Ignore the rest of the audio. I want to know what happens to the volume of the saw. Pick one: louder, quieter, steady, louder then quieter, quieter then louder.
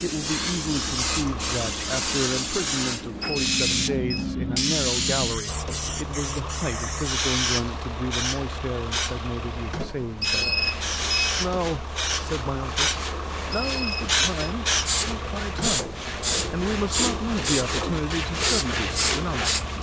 louder.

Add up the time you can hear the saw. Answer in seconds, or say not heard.
9 s.